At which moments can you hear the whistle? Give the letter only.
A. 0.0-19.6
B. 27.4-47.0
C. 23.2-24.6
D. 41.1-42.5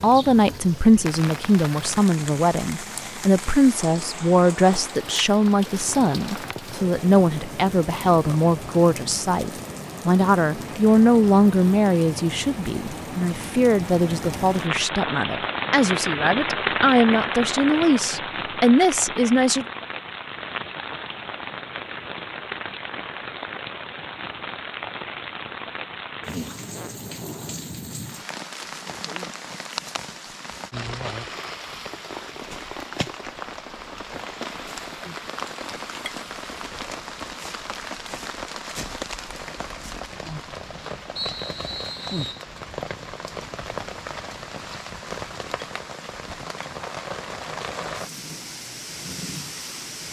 D.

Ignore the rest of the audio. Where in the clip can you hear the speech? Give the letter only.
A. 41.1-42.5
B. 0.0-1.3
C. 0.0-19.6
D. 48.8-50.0
C.